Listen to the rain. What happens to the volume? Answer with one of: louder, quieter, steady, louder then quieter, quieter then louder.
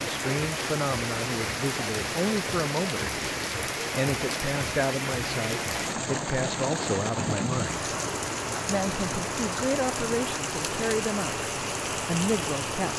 steady.